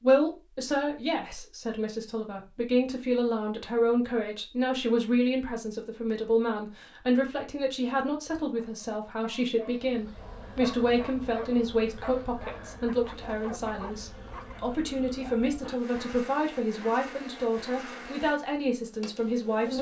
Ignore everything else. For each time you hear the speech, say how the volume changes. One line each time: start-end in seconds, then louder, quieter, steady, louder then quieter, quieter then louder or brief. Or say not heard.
0.0-19.7 steady.